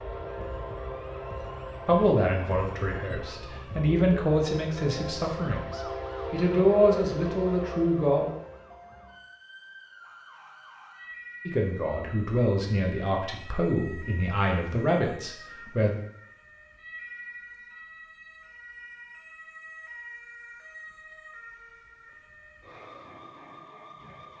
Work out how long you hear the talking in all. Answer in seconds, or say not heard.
11 s.